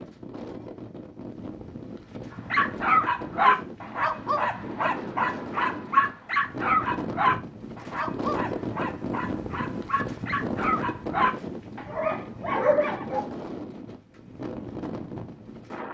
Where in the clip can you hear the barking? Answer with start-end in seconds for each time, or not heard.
2.5-13.2.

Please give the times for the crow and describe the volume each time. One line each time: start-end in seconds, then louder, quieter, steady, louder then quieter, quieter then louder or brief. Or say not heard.
not heard.